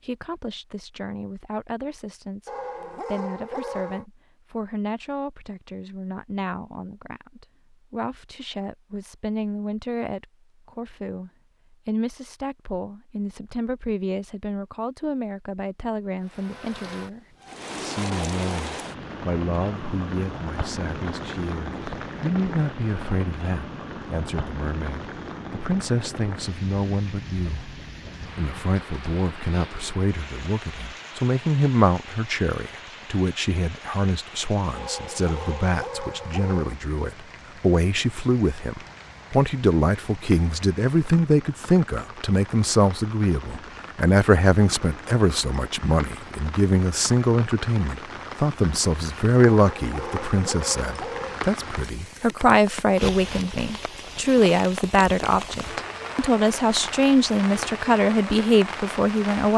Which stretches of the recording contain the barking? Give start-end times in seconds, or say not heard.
2.5-4.0, 34.7-36.8, 49.5-51.4.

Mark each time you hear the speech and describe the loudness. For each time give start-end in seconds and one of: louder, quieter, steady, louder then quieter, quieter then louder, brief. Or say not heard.
0.0-59.5 louder.